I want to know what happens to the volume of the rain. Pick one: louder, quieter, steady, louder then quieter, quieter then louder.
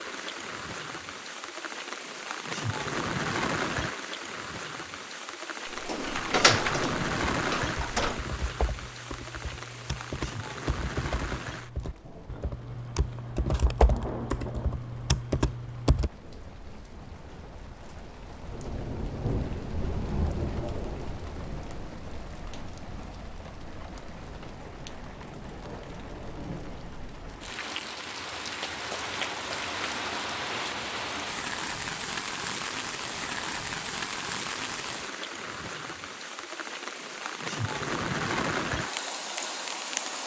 quieter then louder.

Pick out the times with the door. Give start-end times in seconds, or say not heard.
5.7-8.2.